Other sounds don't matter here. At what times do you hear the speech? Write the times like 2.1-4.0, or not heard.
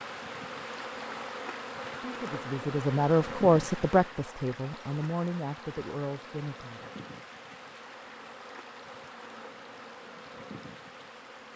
2.0-6.9.